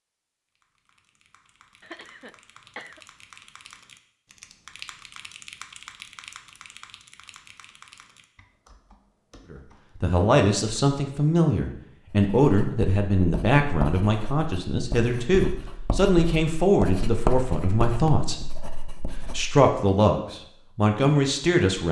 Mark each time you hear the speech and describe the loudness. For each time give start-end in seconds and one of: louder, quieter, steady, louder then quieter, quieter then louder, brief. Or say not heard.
9.5-18.4 steady
19.4-21.8 brief.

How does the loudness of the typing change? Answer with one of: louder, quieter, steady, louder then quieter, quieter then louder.
louder then quieter.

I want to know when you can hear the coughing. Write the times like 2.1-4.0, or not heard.
1.8-3.0.